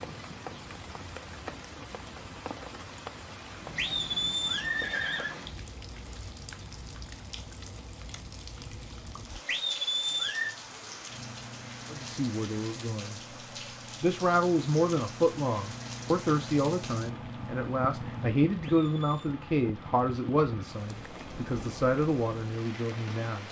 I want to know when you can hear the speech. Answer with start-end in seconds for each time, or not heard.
11.9-13.2, 14.0-23.4.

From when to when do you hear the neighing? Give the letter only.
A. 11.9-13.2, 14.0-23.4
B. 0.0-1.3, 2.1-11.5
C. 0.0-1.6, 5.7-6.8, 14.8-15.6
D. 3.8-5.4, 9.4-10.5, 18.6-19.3
D.